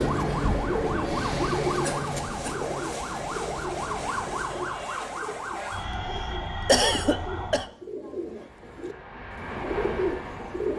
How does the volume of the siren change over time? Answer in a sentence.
The volume of the siren stays about the same.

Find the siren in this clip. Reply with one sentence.
The siren can be heard from 0.0 to 7.7 s.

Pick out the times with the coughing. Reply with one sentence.
The coughing can be heard from 1.8 to 2.6 s and from 5.5 to 7.7 s.